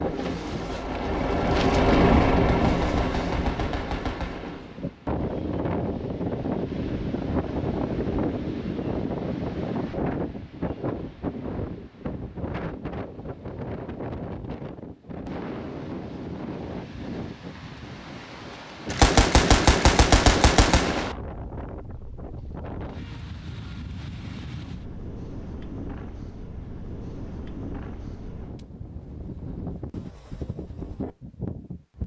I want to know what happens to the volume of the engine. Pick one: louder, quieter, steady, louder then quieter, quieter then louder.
louder then quieter.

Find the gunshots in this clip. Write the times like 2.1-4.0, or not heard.
2.6-4.6, 18.9-21.1.